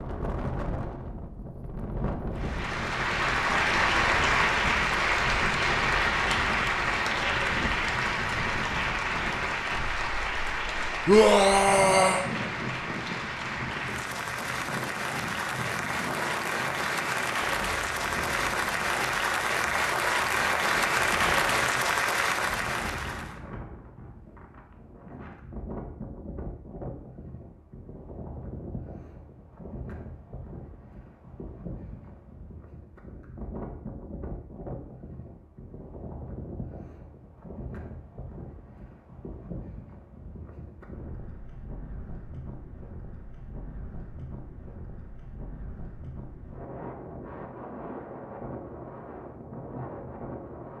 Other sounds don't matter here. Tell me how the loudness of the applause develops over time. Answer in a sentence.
The loudness of the applause goes down, then up.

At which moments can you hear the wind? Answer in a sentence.
You can hear the wind from 0.0 to 50.7 s.